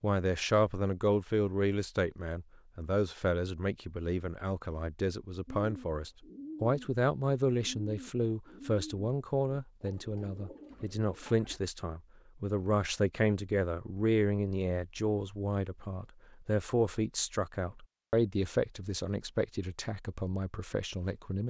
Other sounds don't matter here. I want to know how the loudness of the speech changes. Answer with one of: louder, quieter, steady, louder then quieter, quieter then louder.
steady.